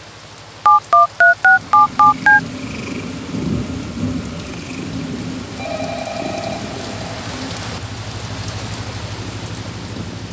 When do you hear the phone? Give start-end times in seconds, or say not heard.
0.7-2.4, 5.5-7.2.